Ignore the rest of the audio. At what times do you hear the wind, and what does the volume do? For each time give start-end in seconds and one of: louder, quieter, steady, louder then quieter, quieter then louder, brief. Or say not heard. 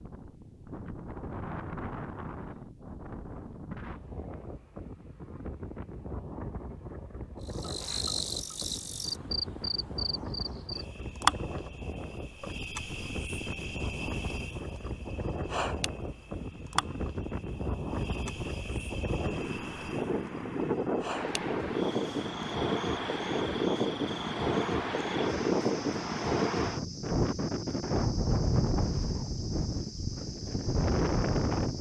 0.0-31.7 louder.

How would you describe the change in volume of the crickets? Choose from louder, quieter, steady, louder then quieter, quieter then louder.
quieter.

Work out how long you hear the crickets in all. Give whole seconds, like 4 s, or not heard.
24 s.